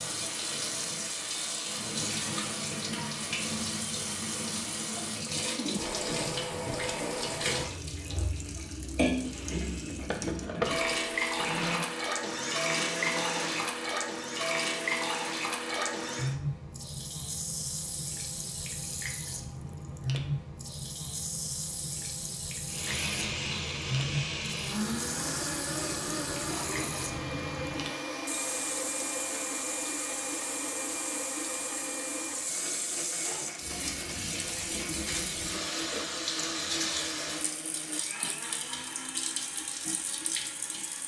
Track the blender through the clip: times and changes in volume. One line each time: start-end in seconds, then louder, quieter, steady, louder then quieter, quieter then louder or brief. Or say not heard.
9.2-16.4 quieter
22.6-41.0 quieter.